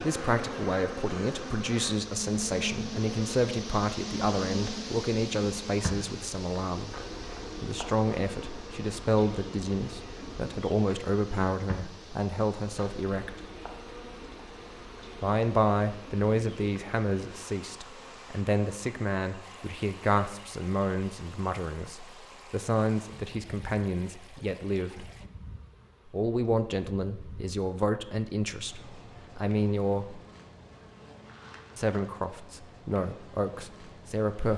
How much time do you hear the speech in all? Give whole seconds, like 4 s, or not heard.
30 s.